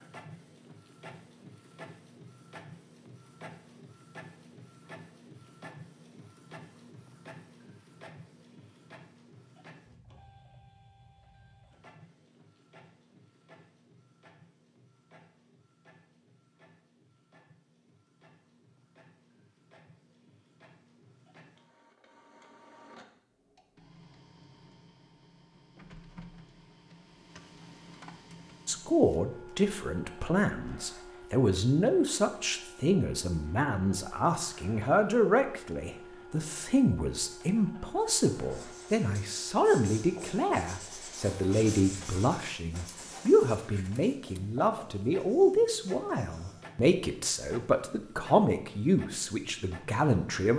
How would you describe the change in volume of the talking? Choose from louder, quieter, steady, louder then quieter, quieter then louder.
steady.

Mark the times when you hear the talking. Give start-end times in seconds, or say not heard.
28.6-50.5.